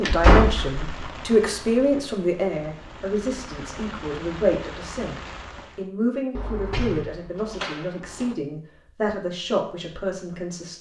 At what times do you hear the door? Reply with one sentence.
The door can be heard from 0.0 to 1.2 s and from 6.3 to 8.3 s.